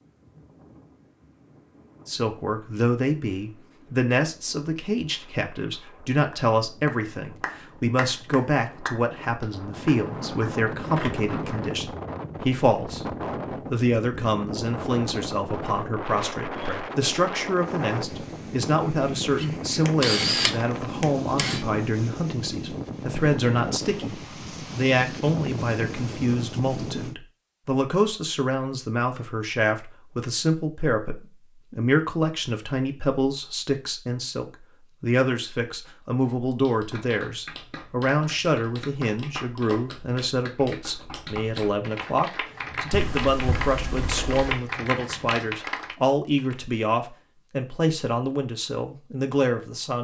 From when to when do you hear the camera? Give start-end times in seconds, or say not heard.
9.8-11.8, 19.4-21.6, 42.9-44.6.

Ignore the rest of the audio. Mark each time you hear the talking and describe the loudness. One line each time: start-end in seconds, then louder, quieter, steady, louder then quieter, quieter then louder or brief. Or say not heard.
2.0-49.9 steady.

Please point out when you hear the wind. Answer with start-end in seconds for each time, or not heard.
0.0-27.1.